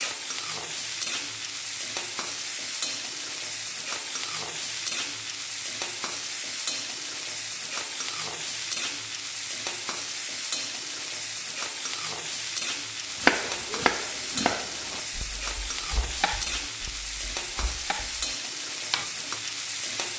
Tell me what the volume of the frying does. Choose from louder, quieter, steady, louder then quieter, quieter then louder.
steady.